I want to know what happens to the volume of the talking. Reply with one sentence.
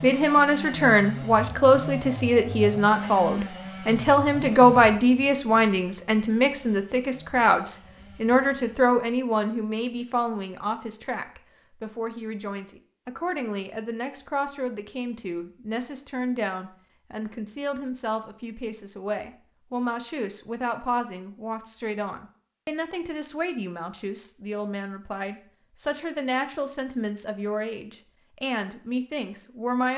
The loudness of the talking goes down.